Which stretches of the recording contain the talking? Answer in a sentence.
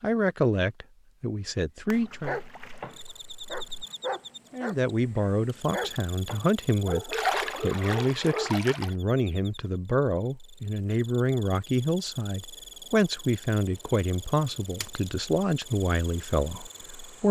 You can hear the talking from 0.0 to 2.4 s and from 4.5 to 17.2 s.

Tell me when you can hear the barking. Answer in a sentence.
The barking can be heard from 2.0 to 8.6 s.